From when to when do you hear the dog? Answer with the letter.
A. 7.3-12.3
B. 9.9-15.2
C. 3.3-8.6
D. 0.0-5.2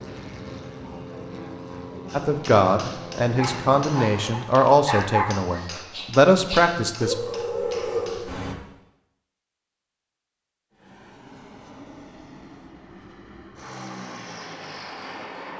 C.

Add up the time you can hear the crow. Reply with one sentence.
The crow can't be heard in this clip.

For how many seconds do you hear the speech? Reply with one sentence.
You can hear the speech for 5 seconds altogether.